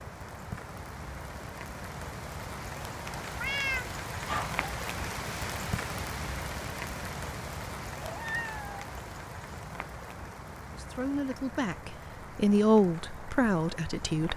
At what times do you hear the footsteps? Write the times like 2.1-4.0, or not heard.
not heard.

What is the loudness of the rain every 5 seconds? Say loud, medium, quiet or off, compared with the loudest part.
loud, loud, medium.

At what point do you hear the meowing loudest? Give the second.
4 s.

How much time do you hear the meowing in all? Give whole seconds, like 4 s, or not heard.
2 s.